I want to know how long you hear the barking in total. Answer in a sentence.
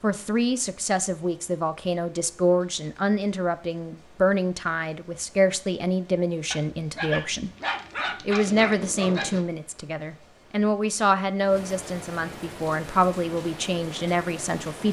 The barking can be heard for 3 seconds in total.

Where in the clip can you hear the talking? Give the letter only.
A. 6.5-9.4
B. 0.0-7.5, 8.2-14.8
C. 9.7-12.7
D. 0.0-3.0
B.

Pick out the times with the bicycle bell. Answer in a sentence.
You can't hear the bicycle bell here.